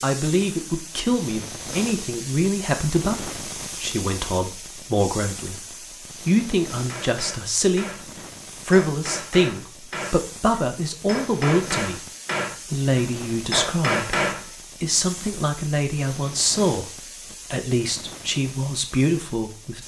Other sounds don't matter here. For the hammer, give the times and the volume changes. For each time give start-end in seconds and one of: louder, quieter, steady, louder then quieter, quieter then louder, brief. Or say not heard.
6.8-14.5 louder.